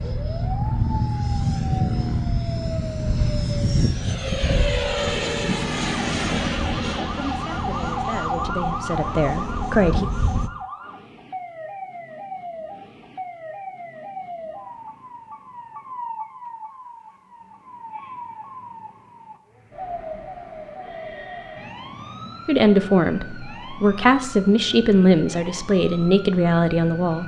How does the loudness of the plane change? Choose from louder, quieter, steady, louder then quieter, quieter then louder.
quieter.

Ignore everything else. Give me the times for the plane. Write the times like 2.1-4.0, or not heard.
0.0-10.5.